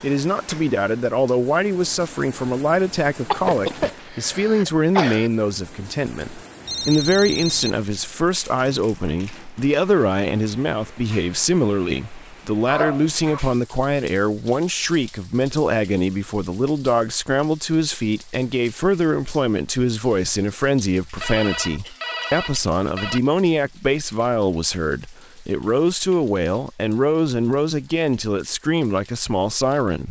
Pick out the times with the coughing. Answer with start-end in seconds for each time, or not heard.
3.3-5.3, 12.7-13.5, 21.8-22.8.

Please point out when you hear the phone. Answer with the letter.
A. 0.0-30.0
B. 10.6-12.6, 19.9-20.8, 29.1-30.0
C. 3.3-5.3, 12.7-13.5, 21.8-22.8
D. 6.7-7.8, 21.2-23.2
D.